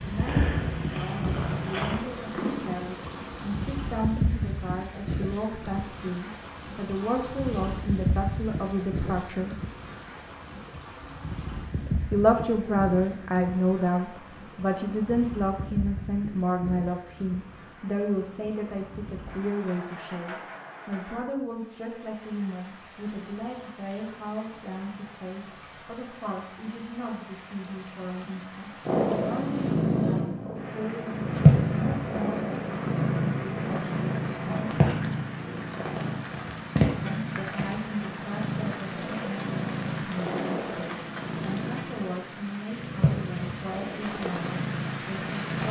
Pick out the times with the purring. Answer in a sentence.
You can hear the purring from 0.0 to 3.6 s and from 28.9 to 45.6 s.